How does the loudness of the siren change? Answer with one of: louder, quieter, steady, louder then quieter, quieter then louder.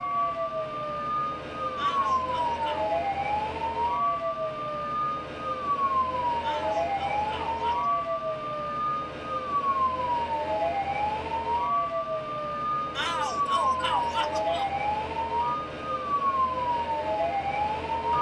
steady.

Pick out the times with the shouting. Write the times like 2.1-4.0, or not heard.
1.8-2.9, 6.4-7.9, 12.9-14.7.